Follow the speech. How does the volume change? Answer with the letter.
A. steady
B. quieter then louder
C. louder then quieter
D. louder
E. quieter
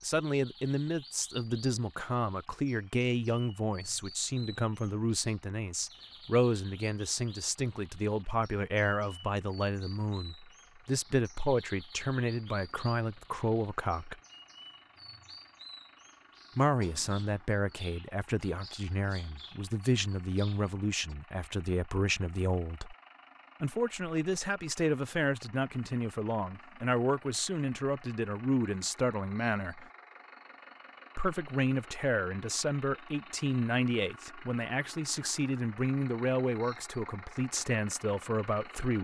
A.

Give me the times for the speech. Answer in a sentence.
You can hear the speech from 0.0 to 14.2 s, from 16.6 to 22.9 s, from 23.6 to 29.9 s and from 31.1 to 38.9 s.